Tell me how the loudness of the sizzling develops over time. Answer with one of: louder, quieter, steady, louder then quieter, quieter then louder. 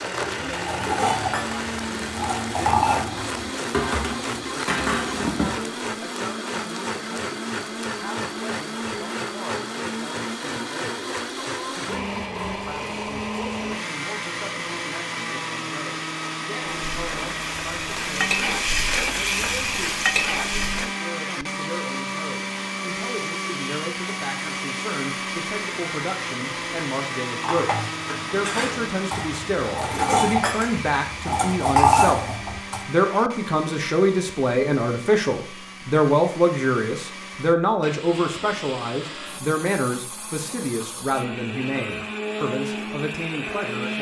louder.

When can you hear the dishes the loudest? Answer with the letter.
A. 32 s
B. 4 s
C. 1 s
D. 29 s
A.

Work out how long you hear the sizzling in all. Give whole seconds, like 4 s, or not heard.
4 s.